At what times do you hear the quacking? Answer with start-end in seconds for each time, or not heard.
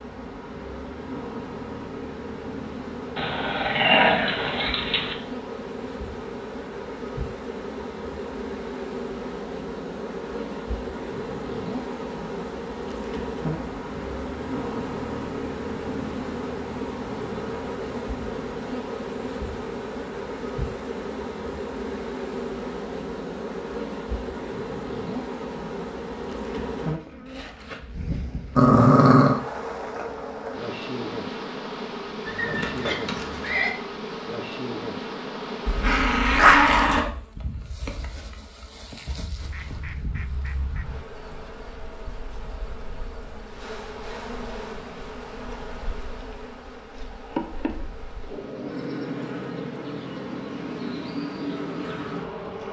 39.4-41.0.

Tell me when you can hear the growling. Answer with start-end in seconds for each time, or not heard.
3.1-5.2, 28.6-29.4, 35.6-37.0.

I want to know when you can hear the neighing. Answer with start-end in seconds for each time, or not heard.
32.2-33.8.